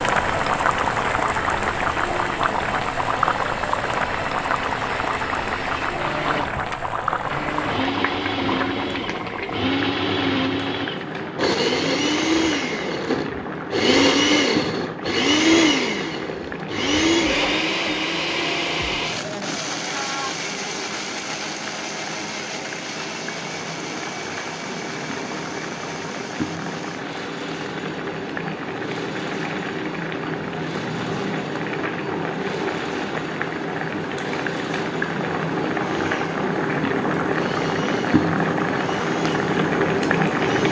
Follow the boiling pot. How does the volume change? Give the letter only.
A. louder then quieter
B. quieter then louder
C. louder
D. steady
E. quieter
B.